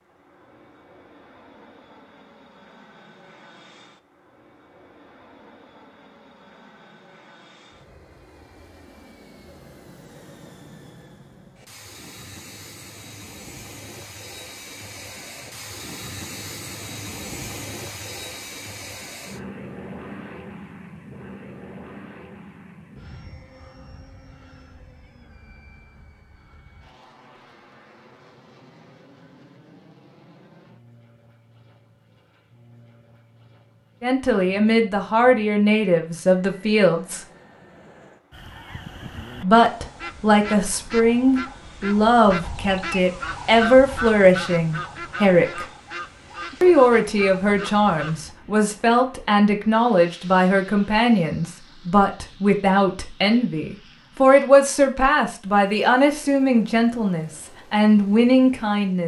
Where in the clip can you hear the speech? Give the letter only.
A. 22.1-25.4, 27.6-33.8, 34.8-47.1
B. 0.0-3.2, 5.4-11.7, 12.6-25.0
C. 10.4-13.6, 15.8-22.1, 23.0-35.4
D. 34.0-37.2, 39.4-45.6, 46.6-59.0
D.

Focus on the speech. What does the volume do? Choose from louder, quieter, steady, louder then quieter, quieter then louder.
steady.